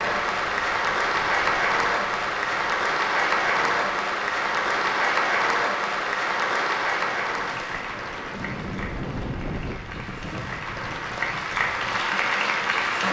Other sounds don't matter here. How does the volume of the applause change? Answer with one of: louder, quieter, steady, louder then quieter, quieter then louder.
quieter then louder.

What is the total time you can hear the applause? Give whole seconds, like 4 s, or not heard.
13 s.